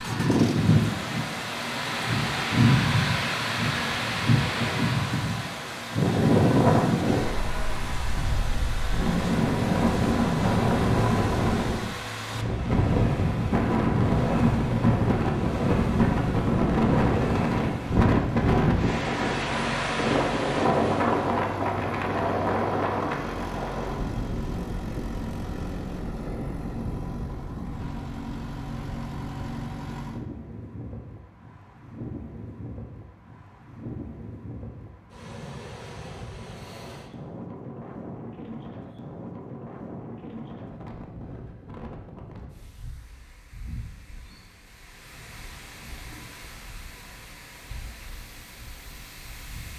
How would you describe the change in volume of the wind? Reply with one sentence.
The loudness of the wind goes down.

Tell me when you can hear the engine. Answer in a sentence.
You can hear the engine from 0.0 to 30.2 s.